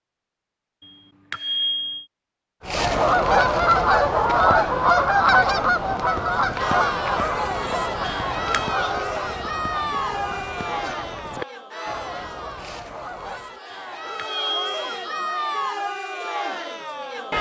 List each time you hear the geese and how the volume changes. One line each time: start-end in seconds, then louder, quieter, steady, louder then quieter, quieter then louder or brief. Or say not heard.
2.6-13.6 quieter.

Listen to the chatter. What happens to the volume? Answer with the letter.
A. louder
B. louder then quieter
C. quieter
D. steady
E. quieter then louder
E.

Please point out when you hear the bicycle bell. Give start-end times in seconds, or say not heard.
0.8-2.0, 8.1-8.7, 13.7-15.2.